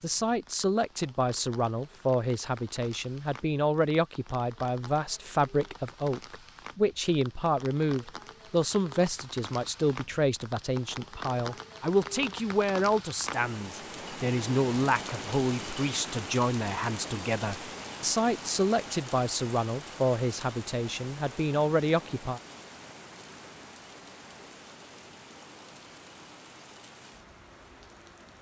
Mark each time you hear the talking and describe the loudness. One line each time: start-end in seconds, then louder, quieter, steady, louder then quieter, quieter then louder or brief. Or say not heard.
0.0-22.4 steady.